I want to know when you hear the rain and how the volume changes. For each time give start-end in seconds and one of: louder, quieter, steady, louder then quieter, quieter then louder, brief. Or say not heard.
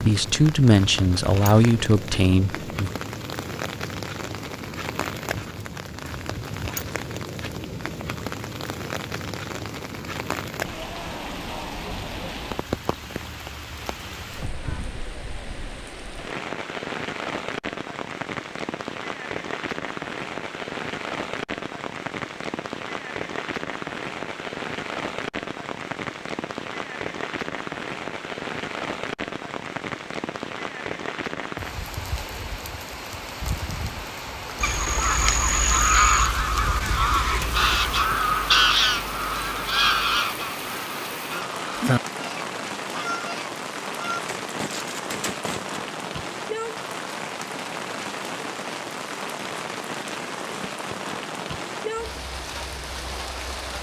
0.0-53.7 steady.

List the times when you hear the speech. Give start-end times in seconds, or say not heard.
0.1-2.9.